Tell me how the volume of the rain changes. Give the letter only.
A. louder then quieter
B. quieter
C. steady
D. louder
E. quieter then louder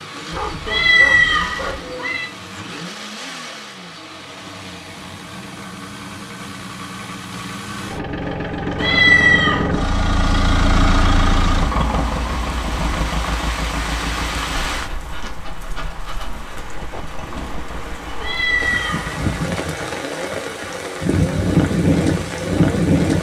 E.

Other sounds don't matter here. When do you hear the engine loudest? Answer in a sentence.
The loudest moment of the engine is at 11 seconds.